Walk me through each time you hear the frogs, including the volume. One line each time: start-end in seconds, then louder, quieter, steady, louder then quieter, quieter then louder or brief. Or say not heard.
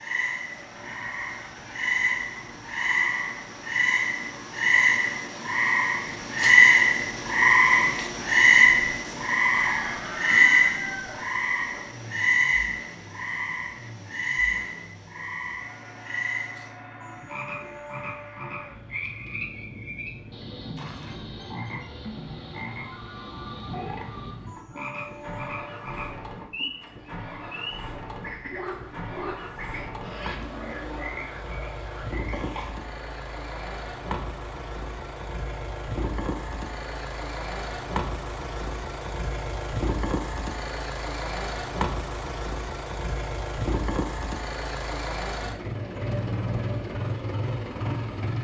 0.0-32.8 quieter.